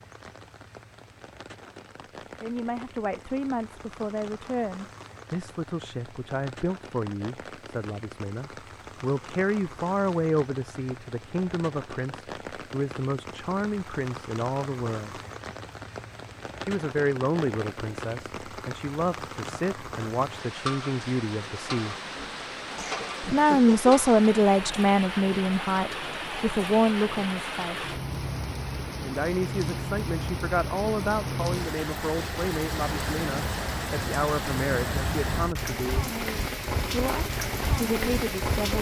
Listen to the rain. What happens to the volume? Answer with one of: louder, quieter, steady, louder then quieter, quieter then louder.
louder.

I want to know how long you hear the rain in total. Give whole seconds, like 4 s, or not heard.
39 s.